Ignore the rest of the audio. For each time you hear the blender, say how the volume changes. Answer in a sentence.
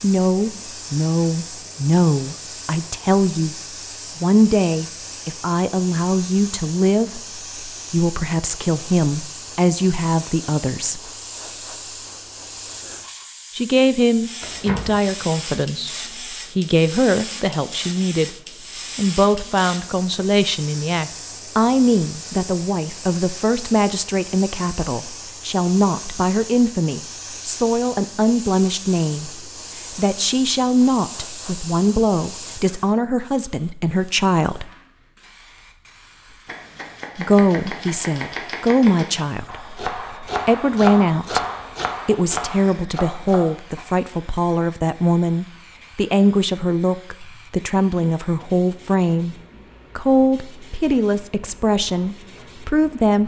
The blender can't be heard in this clip.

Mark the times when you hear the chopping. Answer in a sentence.
The chopping can be heard from 36.3 to 43.9 s.